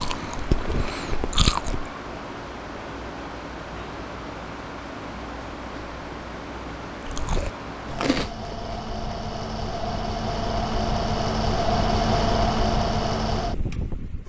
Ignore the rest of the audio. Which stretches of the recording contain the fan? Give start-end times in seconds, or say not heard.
0.0-14.2.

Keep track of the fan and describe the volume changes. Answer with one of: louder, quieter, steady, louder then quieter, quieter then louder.
louder.